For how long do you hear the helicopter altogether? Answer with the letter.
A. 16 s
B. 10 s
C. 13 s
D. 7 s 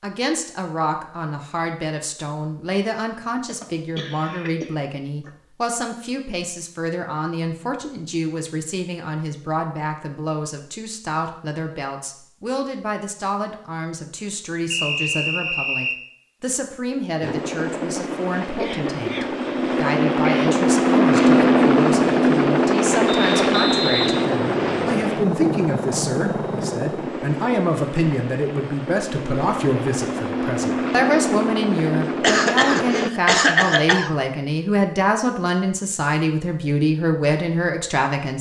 A.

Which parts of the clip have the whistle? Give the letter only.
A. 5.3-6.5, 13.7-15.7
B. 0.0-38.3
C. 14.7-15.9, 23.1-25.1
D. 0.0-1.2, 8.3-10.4
C.